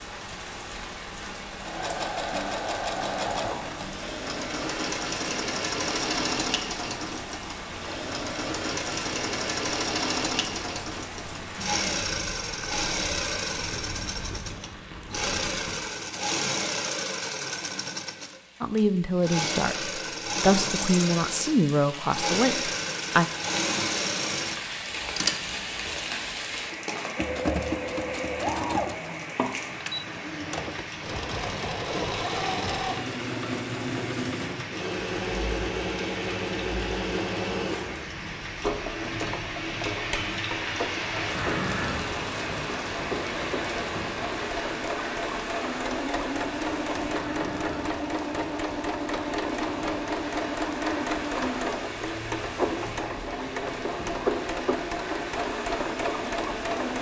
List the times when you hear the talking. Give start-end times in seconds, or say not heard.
18.6-23.2.